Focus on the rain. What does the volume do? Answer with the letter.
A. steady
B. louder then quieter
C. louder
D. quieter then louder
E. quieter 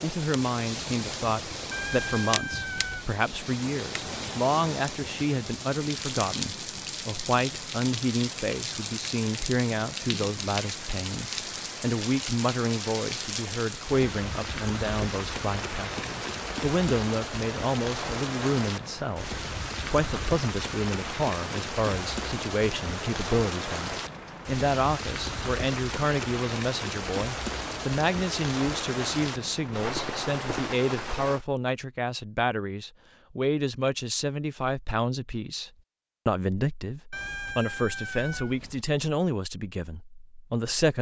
A.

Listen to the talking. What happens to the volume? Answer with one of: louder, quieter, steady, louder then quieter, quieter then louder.
steady.